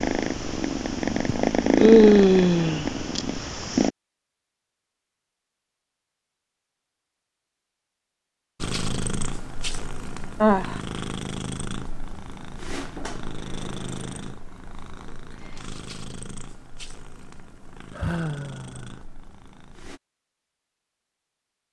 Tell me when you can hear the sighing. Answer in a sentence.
You can hear the sighing from 1.2 to 2.9 s, from 10.4 to 10.8 s and from 17.9 to 18.9 s.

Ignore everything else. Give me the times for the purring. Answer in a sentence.
The purring can be heard from 0.0 to 3.9 s and from 8.6 to 20.0 s.